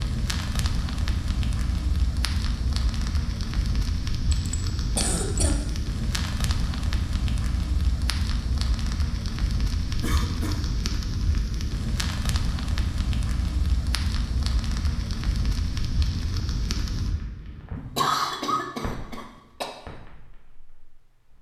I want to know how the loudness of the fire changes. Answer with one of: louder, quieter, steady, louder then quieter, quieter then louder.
quieter.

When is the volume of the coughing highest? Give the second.
18 s.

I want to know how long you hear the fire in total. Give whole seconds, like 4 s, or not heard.
21 s.